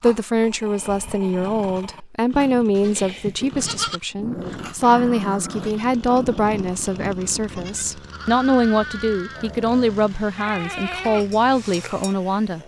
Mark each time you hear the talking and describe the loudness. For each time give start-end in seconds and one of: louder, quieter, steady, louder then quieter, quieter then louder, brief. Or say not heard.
0.0-12.6 steady.